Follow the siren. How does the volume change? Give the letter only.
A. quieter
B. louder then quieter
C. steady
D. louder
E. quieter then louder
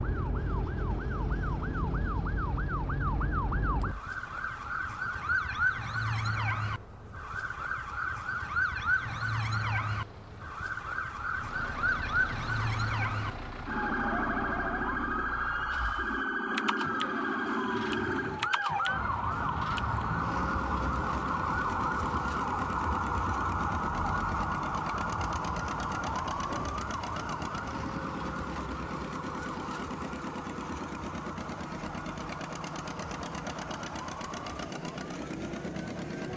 A.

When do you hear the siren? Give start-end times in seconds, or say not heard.
0.0-36.3.